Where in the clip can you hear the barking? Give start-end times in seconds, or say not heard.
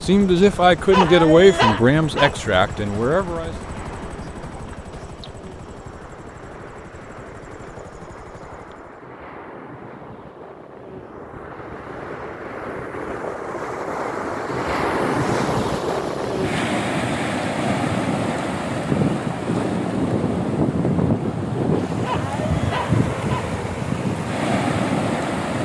0.9-2.4, 22.0-23.4.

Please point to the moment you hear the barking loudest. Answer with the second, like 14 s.
2 s.